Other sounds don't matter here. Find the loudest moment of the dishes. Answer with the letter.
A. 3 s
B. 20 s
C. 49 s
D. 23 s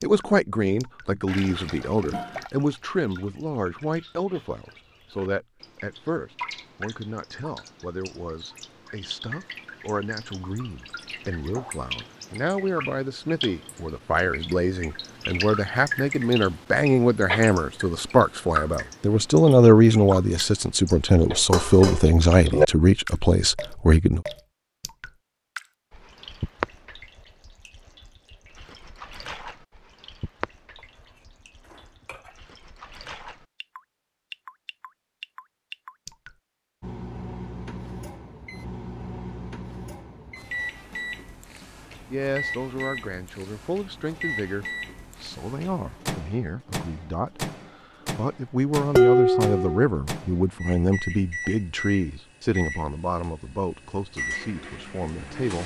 C.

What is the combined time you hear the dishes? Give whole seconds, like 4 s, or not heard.
4 s.